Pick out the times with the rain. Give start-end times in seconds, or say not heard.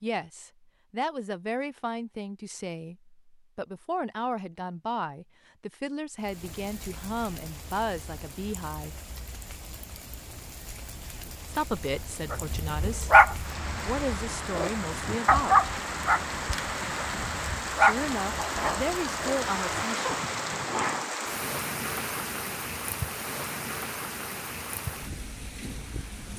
6.2-26.3.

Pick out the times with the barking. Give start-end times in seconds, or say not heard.
12.3-20.1.